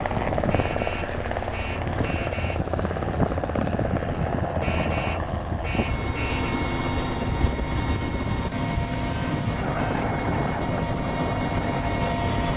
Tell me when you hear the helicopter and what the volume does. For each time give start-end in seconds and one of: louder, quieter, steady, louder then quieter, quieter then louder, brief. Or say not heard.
0.0-12.5 steady.